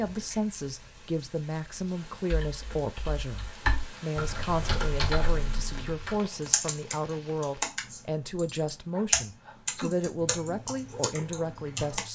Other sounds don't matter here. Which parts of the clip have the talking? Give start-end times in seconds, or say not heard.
0.0-12.1.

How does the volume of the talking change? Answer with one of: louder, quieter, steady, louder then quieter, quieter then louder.
steady.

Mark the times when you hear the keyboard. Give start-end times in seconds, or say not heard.
2.3-12.1.